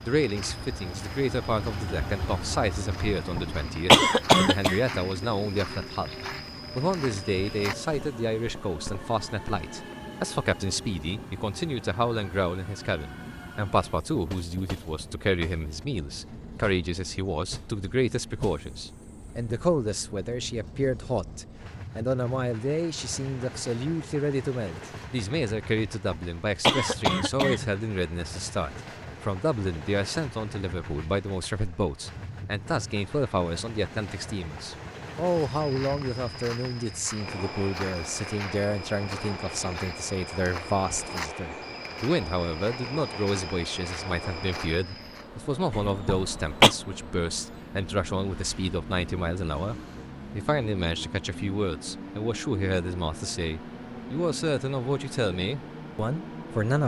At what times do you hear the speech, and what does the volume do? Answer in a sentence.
The speech can be heard from 0.0 to 56.8 s, at a steady volume.